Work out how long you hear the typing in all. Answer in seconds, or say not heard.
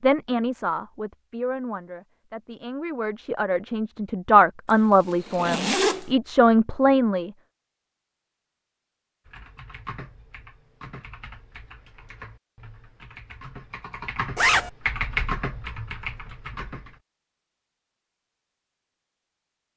8 s.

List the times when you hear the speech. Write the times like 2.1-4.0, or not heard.
0.0-7.3.